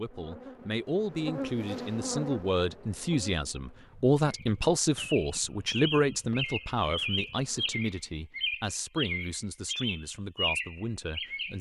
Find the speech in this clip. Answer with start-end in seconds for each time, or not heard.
0.0-11.5.